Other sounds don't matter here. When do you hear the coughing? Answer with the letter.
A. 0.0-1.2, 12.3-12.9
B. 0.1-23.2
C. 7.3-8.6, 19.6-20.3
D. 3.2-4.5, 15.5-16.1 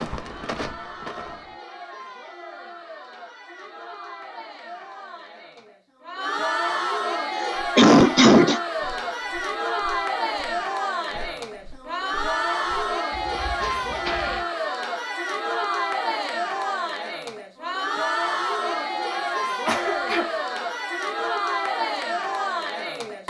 C.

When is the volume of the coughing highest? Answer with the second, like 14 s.
8 s.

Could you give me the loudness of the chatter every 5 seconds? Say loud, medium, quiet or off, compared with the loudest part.
quiet, loud, loud, loud, loud.